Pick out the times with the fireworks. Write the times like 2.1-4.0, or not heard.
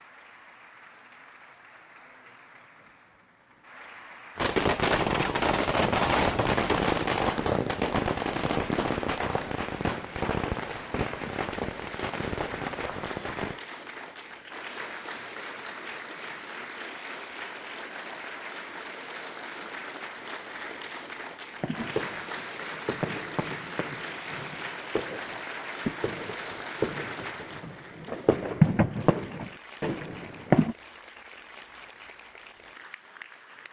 4.3-13.6, 21.6-30.8.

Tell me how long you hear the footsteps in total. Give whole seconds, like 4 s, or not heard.
not heard.